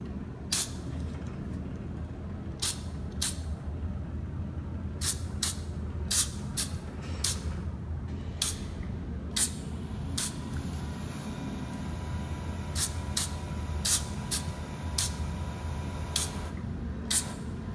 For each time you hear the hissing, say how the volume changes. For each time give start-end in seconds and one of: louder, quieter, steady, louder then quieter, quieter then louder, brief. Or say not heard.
0.0-17.7 steady.